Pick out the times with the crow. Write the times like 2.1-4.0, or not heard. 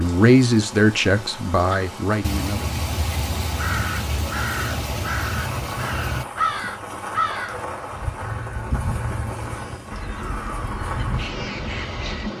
1.7-12.3.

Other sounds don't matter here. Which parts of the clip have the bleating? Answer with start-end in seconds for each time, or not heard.
not heard.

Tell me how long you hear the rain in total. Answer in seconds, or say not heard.
12 s.